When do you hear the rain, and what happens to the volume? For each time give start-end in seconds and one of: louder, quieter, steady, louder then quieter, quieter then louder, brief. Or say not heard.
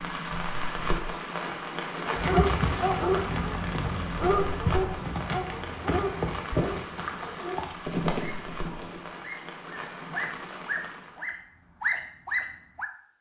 0.0-11.3 quieter.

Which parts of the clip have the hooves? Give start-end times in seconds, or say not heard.
2.1-9.1.